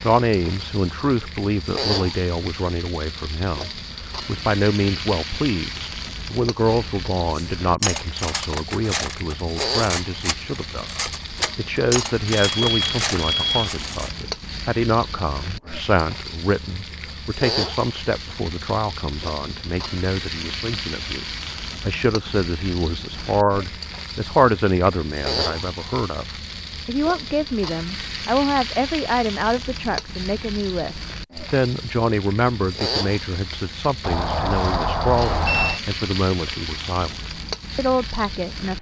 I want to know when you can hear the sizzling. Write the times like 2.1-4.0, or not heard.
0.0-38.7.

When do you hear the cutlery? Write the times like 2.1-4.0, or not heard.
7.3-14.1.